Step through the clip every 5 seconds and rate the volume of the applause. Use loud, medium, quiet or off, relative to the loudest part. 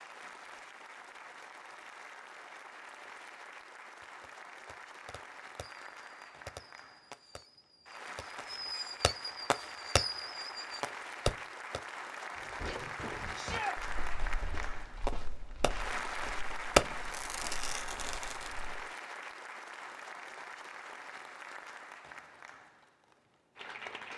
medium, medium, loud, loud, medium.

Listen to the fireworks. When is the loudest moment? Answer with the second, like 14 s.
17 s.